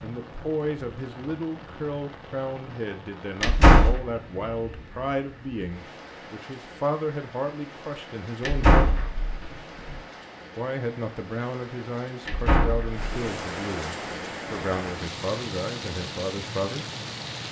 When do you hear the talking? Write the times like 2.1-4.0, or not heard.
0.0-8.8, 10.6-16.9.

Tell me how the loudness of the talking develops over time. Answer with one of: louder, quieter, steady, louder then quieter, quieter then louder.
steady.